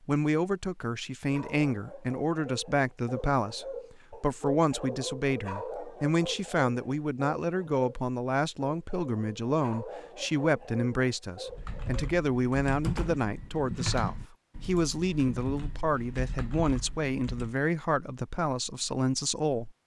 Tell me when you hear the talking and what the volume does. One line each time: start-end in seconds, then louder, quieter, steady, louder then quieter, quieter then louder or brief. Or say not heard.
0.1-19.7 steady.